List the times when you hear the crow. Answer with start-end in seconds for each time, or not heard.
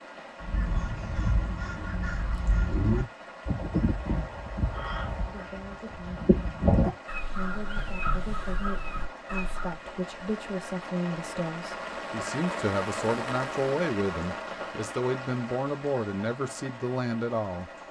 0.4-9.8.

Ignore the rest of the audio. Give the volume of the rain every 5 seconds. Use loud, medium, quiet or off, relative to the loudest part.
medium, medium, loud, medium.